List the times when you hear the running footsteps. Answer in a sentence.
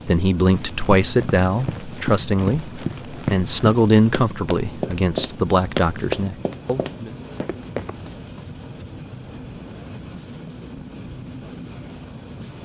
The running footsteps can be heard from 0.5 to 8.0 s.